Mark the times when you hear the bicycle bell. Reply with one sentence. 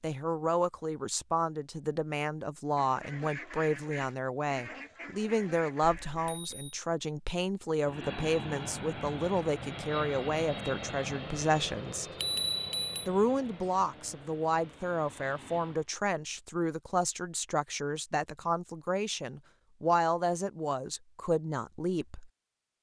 You can hear the bicycle bell from 6.0 to 6.8 s and from 12.2 to 13.1 s.